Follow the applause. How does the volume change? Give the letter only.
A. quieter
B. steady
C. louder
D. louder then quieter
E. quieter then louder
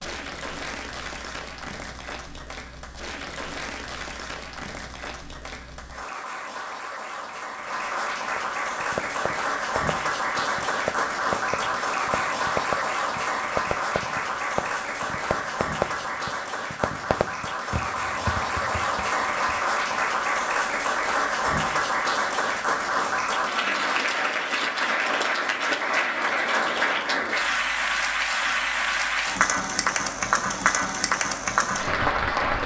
C.